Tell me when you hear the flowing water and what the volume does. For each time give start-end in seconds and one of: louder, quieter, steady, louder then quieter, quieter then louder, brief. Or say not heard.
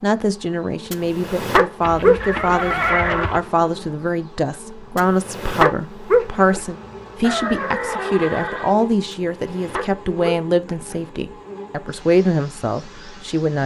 not heard.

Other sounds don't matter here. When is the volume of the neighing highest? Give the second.
3 s.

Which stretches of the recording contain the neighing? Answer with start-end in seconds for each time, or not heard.
1.8-3.4, 7.2-8.8.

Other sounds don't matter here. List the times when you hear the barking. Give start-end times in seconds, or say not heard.
0.9-2.9, 5.0-6.6, 9.1-11.1.